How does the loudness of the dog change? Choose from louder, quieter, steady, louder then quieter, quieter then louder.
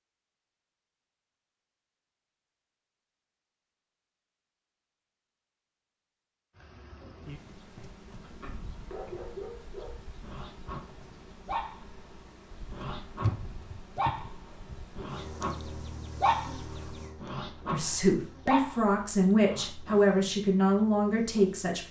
louder.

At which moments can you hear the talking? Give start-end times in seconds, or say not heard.
17.7-21.8.